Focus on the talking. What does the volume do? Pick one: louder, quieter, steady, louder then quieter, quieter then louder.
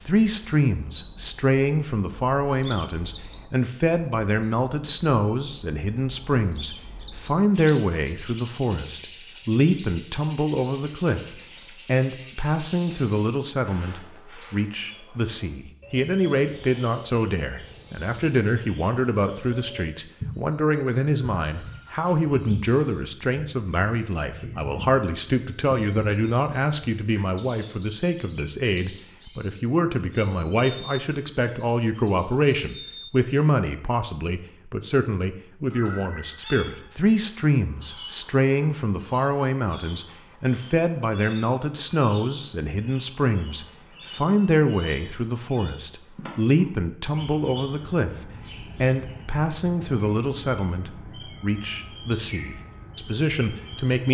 steady.